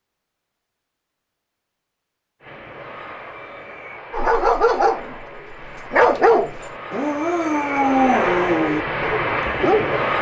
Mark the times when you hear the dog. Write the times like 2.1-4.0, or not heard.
4.1-5.2, 5.9-10.0.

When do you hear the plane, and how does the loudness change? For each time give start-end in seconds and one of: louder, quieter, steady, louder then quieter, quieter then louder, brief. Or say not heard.
2.4-10.1 louder.